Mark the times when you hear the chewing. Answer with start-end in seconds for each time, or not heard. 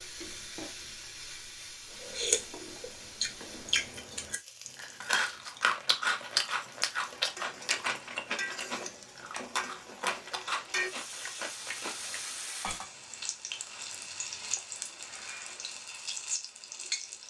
1.9-12.8.